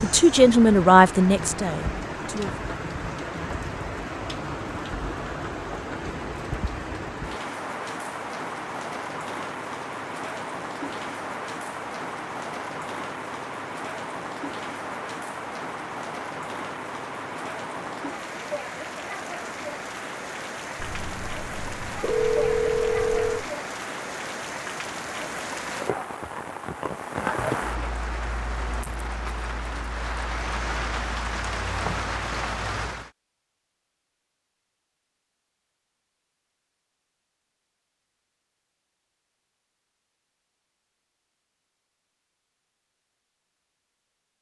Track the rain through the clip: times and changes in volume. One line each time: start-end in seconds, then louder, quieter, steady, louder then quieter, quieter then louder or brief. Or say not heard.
0.0-33.1 steady.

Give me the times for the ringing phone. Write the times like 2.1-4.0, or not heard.
20.8-23.5.